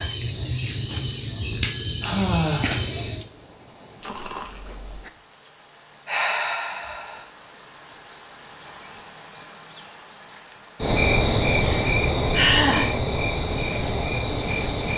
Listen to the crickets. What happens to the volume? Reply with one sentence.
The volume of the crickets goes up, then down.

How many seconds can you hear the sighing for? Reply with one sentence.
You can hear the sighing for 3 seconds altogether.